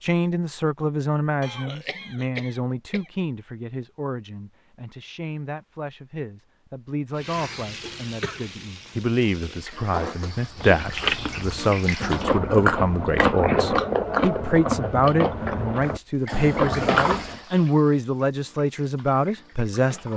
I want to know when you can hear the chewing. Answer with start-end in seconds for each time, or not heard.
10.6-17.4.